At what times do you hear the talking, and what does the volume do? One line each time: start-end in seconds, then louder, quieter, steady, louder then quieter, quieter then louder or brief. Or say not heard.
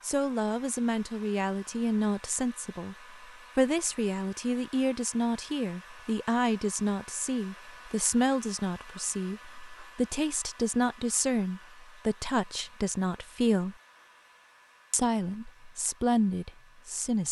0.0-13.8 steady
14.9-17.2 brief.